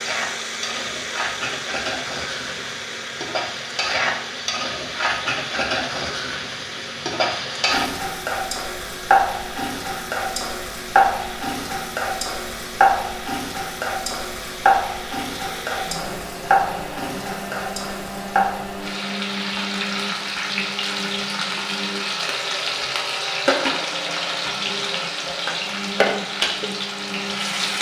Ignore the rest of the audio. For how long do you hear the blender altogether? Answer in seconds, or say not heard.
28 s.